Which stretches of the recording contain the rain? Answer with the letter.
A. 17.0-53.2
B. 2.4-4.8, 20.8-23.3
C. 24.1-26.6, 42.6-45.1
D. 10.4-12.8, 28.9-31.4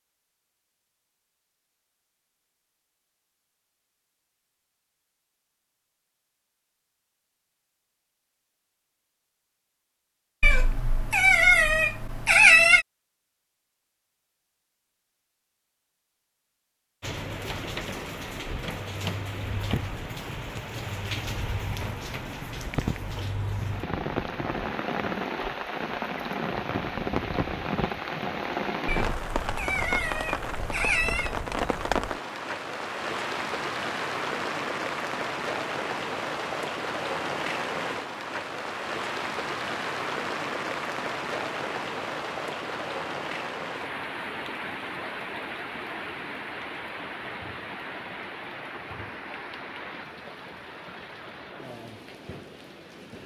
A.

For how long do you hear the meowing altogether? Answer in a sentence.
The meowing can be heard for 5 seconds in total.